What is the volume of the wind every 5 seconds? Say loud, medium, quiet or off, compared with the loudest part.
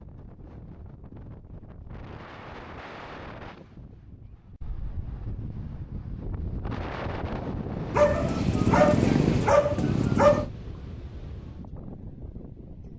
medium, loud, medium.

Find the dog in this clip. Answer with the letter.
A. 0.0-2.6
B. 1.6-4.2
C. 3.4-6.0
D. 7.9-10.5
D.